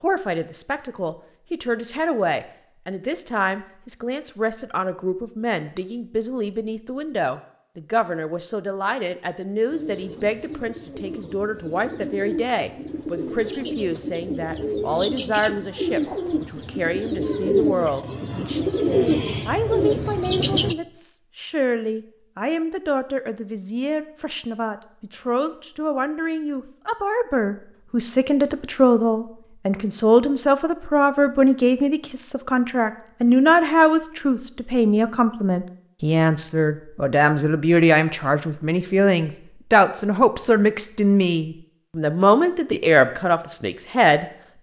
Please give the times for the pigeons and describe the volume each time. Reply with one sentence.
The pigeons can be heard from 9.7 to 20.8 s, getting louder.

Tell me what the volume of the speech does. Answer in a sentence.
The volume of the speech goes up.